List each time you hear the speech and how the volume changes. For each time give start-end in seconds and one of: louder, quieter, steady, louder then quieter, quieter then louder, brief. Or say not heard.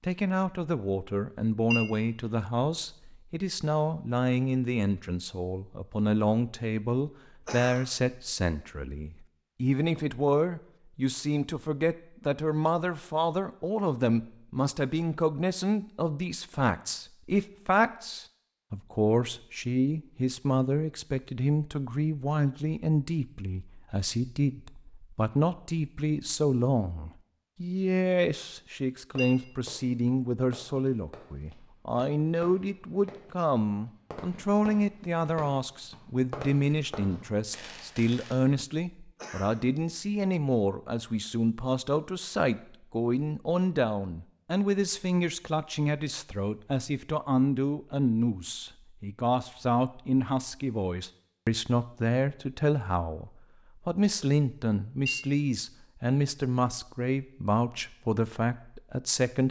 0.0-59.4 steady.